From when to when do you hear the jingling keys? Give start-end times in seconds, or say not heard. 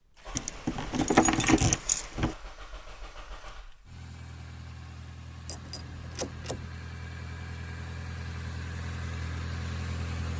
0.3-2.4, 5.5-6.7.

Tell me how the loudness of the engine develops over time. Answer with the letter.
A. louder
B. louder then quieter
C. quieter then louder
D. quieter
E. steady
A.